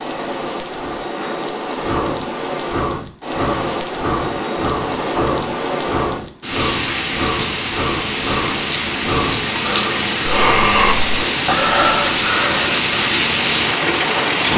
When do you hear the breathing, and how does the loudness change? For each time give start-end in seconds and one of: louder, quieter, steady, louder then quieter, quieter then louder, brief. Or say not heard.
1.2-13.2 louder.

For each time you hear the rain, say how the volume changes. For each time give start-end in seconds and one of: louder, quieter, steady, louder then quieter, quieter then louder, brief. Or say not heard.
0.0-14.5 louder.